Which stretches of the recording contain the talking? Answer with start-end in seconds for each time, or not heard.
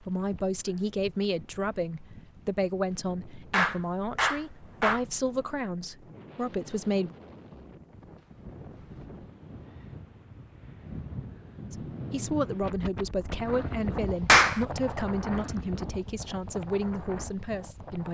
0.0-7.2, 11.7-18.0.